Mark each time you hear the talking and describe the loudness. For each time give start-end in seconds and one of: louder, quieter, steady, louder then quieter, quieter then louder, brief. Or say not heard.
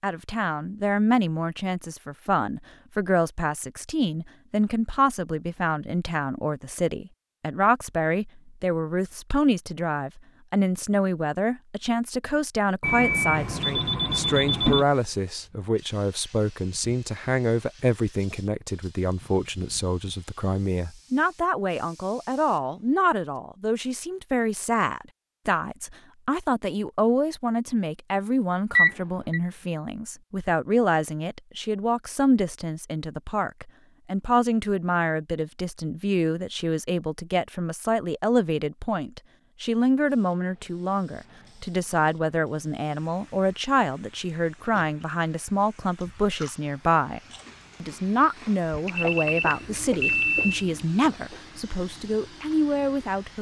0.0-47.2 steady
47.8-53.3 steady.